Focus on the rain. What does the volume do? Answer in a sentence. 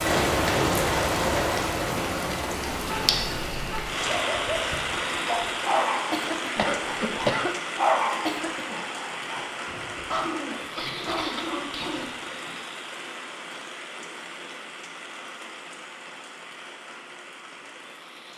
The loudness of the rain goes down.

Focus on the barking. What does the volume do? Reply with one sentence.
The volume of the barking goes up, then down.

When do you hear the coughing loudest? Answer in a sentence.
The loudest moment of the coughing is at 7 seconds.